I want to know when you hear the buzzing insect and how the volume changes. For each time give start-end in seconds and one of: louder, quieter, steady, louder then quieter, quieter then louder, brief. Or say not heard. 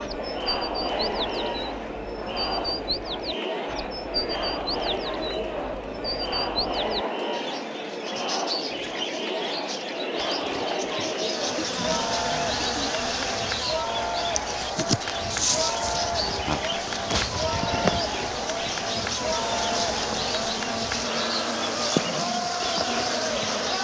11.1-23.7 steady.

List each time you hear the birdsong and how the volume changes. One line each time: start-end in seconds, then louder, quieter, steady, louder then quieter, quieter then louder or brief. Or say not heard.
0.0-23.7 steady.